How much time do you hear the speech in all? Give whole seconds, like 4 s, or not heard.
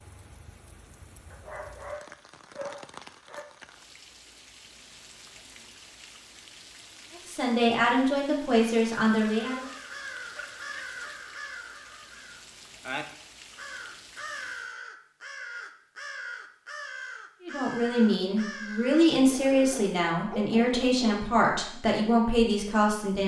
8 s.